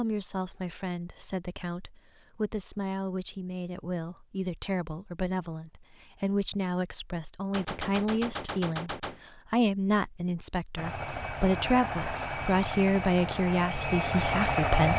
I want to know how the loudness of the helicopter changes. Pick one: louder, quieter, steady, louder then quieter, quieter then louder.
louder.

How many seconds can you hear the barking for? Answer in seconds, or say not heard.
not heard.